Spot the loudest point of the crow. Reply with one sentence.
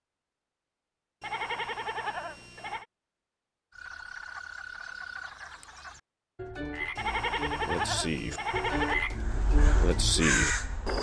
The volume of the crow peaks at 10 seconds.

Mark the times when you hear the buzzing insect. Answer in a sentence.
You can't hear the buzzing insect here.